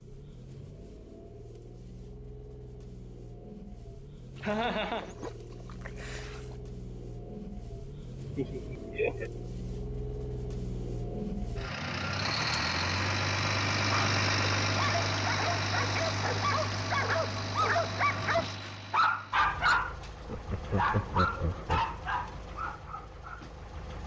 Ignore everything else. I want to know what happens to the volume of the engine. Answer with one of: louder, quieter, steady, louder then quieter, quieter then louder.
louder then quieter.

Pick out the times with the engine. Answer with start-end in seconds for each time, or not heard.
0.0-24.0.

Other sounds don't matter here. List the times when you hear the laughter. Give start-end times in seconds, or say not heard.
4.4-5.2, 8.3-9.3, 20.2-21.9.